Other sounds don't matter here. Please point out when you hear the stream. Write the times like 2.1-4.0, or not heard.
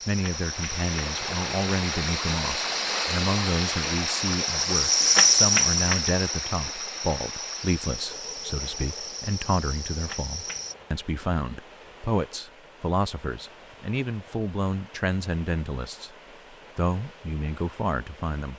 0.0-18.5.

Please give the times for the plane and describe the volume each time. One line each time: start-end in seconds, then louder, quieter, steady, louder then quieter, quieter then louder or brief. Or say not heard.
not heard.